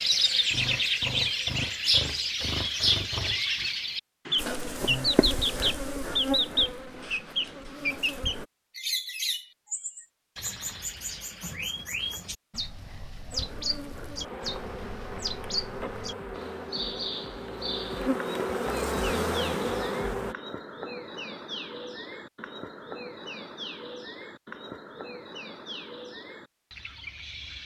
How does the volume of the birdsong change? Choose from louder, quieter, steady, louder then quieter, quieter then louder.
quieter.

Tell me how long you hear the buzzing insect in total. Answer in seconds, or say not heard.
11 s.